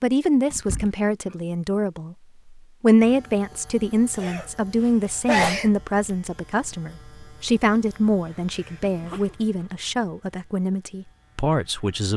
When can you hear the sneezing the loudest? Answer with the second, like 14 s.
5 s.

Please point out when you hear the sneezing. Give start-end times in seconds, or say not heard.
0.5-1.4, 4.2-5.7, 8.3-9.7.